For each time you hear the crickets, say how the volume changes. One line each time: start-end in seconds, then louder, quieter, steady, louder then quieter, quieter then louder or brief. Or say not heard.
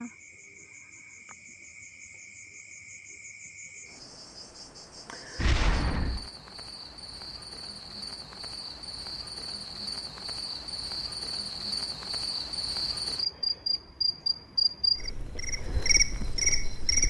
0.0-17.0 louder.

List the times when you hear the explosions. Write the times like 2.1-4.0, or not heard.
5.3-6.3.